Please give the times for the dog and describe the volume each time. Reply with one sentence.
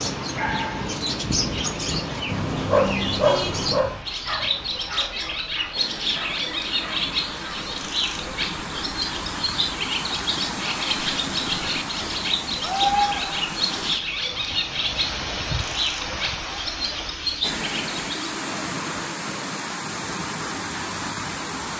You can hear the dog from 0.3 to 7.7 s, getting louder then quieter.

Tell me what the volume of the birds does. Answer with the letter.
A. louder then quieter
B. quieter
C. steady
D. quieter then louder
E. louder
C.